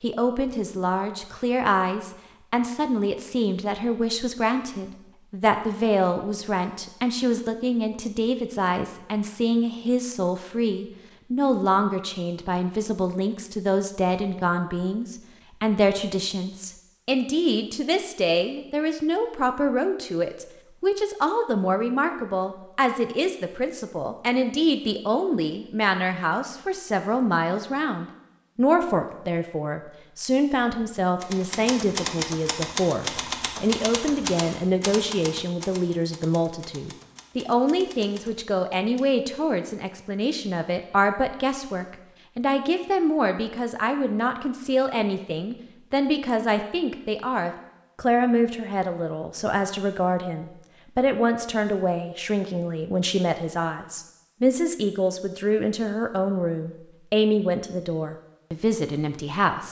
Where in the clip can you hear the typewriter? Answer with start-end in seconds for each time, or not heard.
31.2-39.1.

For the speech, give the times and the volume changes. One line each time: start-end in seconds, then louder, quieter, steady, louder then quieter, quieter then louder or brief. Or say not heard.
0.0-59.6 steady.